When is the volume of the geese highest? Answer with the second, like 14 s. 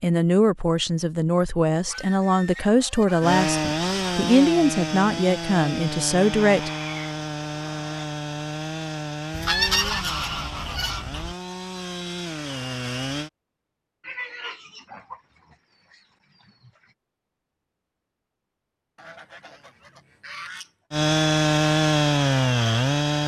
10 s.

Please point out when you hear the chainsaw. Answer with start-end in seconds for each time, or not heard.
3.2-13.3, 20.9-23.2.